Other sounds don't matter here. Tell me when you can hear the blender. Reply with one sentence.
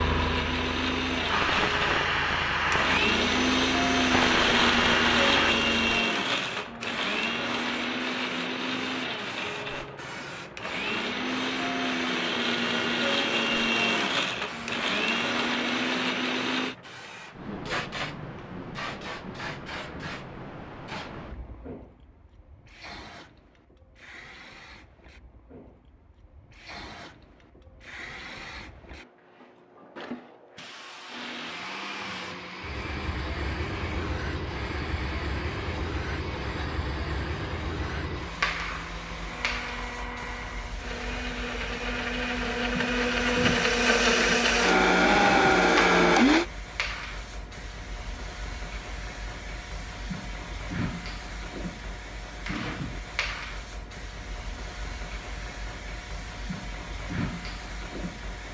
The blender can be heard from 0.0 to 16.8 s and from 31.1 to 46.5 s.